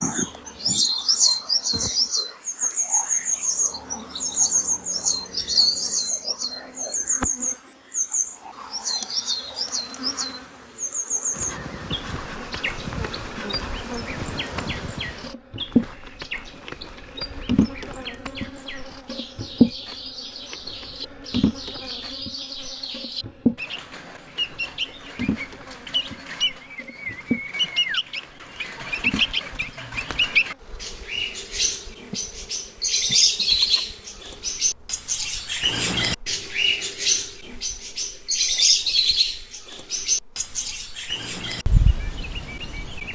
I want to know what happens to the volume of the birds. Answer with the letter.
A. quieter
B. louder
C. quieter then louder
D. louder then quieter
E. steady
C.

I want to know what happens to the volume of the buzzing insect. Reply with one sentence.
The volume of the buzzing insect goes up, then down.